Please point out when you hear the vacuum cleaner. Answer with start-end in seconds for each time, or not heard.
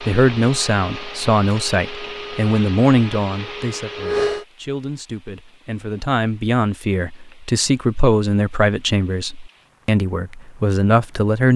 0.0-4.5.